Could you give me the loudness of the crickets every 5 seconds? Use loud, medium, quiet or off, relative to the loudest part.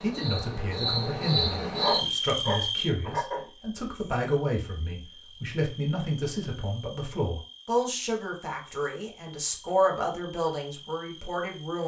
loud, quiet, quiet.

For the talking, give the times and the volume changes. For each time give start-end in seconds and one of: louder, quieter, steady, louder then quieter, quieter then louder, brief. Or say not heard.
0.0-11.8 steady.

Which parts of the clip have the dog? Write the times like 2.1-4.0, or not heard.
1.8-3.5.